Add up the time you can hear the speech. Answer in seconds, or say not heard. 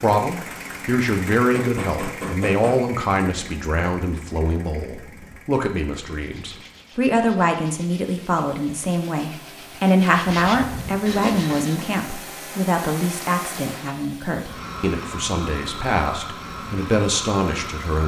18 s.